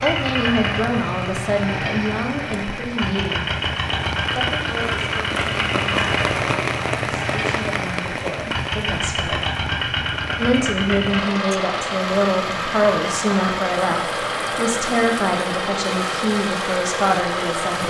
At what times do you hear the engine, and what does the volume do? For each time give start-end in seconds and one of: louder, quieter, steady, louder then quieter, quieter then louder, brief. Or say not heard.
0.0-17.8 steady.